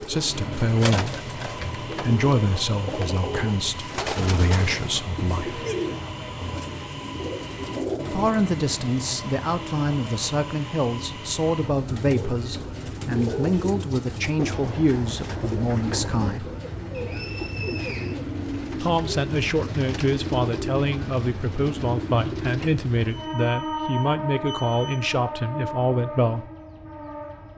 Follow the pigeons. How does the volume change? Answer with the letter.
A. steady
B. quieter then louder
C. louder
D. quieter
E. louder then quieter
A.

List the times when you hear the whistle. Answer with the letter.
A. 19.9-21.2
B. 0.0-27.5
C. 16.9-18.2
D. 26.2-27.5
C.